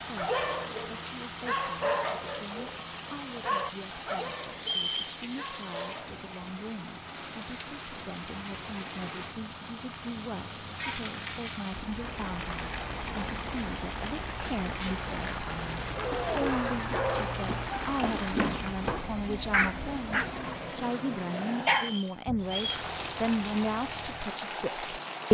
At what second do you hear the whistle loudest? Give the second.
5 s.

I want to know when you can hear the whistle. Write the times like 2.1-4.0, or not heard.
4.6-5.2, 21.6-22.8.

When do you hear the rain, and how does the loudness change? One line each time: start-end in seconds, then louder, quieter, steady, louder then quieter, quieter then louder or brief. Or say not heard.
0.0-25.2 louder.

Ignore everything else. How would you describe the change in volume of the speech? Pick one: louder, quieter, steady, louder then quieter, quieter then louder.
louder.